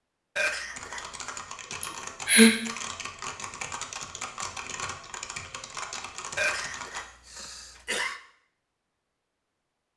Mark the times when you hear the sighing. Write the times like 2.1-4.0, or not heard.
1.8-2.5.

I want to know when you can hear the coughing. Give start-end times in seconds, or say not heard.
0.3-1.1, 6.3-8.2.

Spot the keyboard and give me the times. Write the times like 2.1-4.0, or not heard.
0.7-7.0.